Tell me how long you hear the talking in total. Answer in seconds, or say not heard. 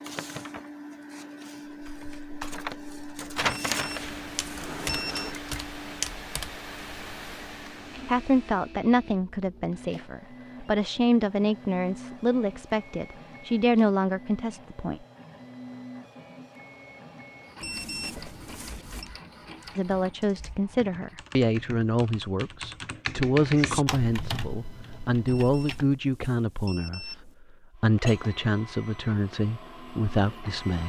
18 s.